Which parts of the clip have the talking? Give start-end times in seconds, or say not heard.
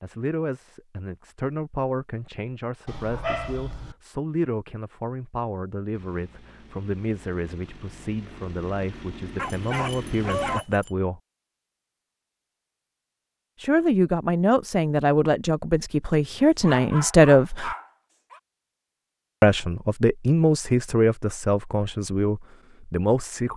0.0-11.2, 13.6-17.7, 19.4-23.5.